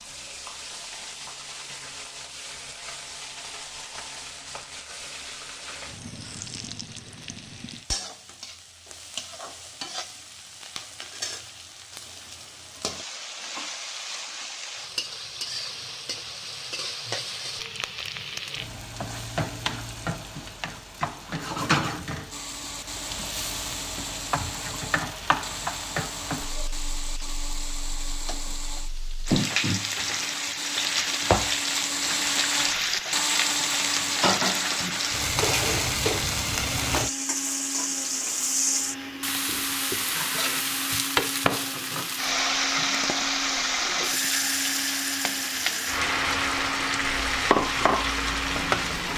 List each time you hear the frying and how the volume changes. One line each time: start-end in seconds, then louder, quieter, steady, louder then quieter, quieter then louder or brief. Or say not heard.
0.0-49.1 louder.